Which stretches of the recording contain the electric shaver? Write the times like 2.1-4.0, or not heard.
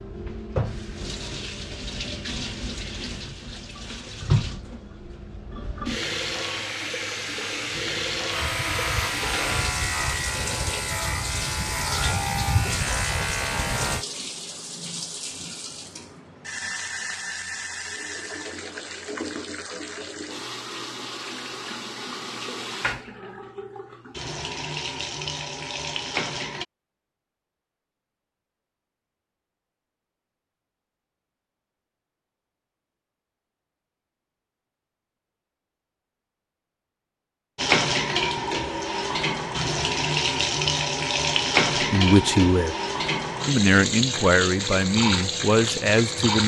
8.3-14.1.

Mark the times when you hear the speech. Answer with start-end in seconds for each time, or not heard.
41.8-42.8, 43.5-46.4.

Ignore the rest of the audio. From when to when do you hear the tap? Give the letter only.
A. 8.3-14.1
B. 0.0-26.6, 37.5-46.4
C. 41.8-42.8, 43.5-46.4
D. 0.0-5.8
B.